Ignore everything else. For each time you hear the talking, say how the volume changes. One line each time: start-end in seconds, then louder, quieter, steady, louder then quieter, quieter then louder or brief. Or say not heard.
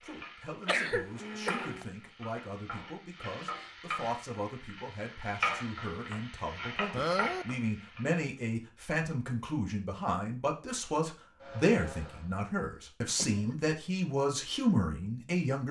0.0-15.6 louder.